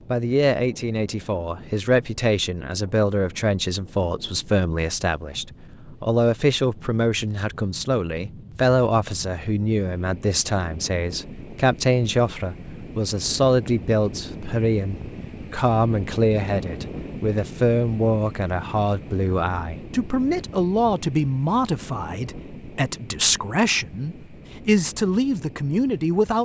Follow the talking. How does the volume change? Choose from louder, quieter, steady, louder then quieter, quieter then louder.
steady.